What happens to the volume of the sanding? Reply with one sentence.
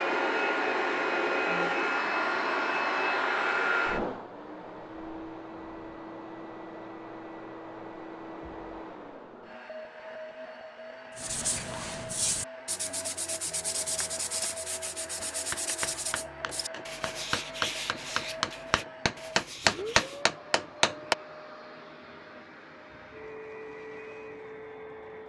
The volume of the sanding goes down.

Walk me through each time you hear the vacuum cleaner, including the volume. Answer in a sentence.
The vacuum cleaner can be heard from 0.0 to 25.2 s, getting quieter.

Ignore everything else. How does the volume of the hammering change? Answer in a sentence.
The volume of the hammering goes up.